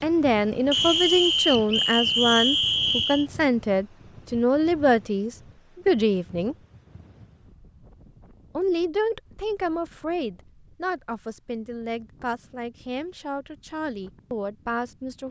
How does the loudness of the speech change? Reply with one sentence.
The loudness of the speech goes down.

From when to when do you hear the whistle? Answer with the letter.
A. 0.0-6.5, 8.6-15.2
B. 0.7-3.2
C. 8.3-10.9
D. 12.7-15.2
B.